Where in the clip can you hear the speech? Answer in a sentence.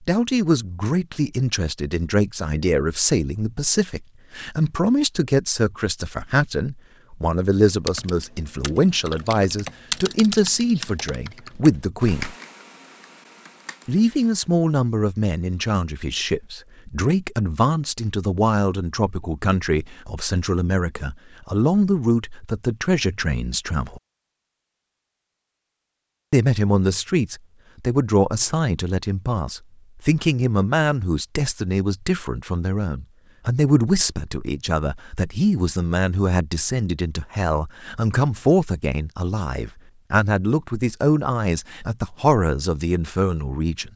You can hear the speech from 0.1 to 12.3 s, from 13.8 to 24.0 s and from 26.3 to 43.9 s.